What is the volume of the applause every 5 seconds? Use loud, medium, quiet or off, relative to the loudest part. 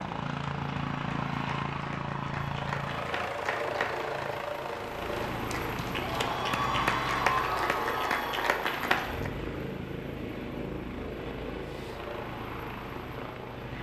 medium, loud, off.